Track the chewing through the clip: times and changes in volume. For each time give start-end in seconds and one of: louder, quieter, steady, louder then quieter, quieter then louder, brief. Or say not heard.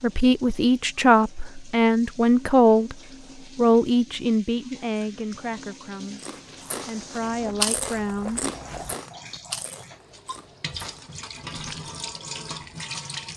6.2-11.8 louder then quieter.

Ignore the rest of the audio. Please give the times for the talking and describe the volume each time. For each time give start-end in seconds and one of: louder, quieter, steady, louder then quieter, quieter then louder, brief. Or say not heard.
0.0-3.0 brief
3.5-8.4 quieter then louder.